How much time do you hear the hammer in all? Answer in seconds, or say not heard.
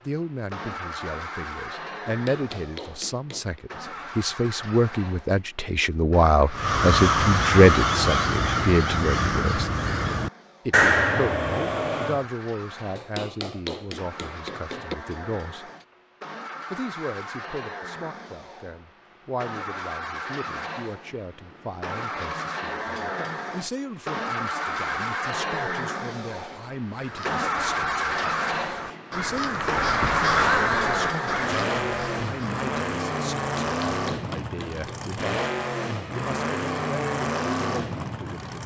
5 s.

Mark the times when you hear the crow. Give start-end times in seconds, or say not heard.
6.5-12.2, 26.9-32.6.